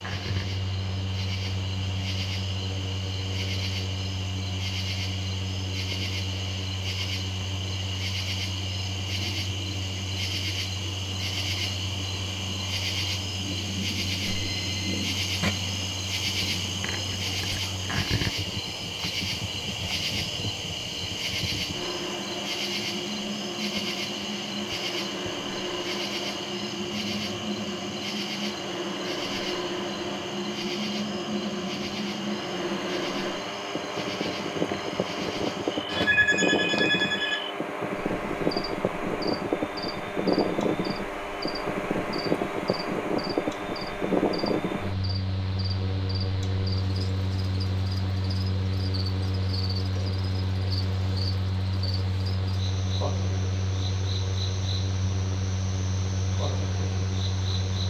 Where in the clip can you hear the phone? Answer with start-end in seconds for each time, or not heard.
14.2-15.6, 35.9-37.5.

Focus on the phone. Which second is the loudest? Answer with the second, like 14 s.
36 s.